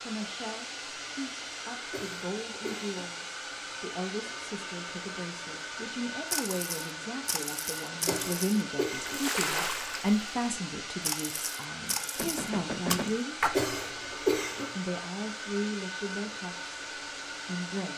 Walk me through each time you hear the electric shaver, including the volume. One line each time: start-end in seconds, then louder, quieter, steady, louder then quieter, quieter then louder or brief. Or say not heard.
not heard.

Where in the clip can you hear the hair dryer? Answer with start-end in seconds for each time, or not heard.
0.0-17.9.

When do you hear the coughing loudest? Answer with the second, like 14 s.
14 s.